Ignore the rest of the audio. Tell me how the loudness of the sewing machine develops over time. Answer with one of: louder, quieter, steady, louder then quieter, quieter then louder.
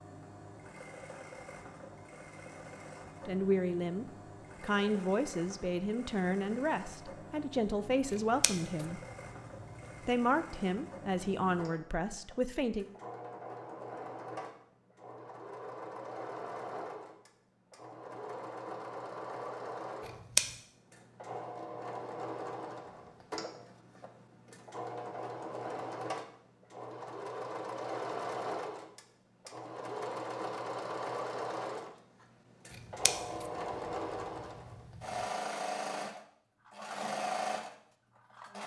louder.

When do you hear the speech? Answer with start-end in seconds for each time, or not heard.
3.2-9.1, 10.0-12.8.